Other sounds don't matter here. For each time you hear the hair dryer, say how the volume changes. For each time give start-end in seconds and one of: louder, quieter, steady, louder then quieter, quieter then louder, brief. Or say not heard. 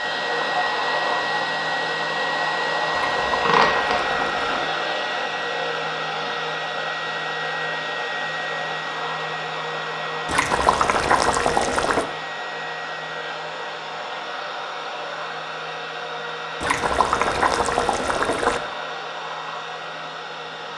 0.0-20.7 quieter.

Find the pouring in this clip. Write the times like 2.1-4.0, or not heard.
2.9-4.7, 10.2-12.1, 16.6-18.6.